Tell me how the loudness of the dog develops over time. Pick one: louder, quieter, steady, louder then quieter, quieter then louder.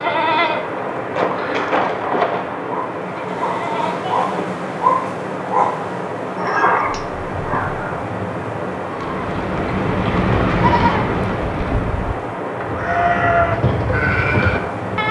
louder then quieter.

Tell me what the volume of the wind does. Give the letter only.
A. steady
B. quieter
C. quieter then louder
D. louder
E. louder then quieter
A.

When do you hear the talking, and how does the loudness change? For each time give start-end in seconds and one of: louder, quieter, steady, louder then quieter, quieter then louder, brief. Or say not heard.
not heard.